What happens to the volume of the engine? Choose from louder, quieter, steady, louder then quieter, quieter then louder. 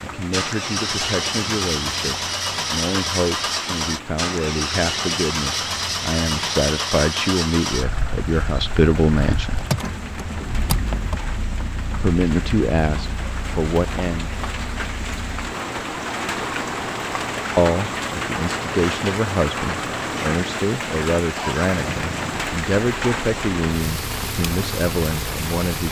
quieter.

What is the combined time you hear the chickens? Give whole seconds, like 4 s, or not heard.
not heard.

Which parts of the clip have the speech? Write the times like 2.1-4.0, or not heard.
0.0-9.6, 12.0-14.3, 17.6-25.8.